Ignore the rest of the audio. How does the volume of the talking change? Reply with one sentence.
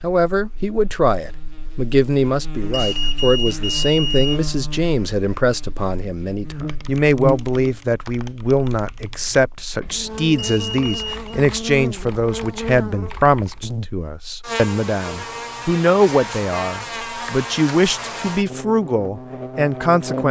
The loudness of the talking stays about the same.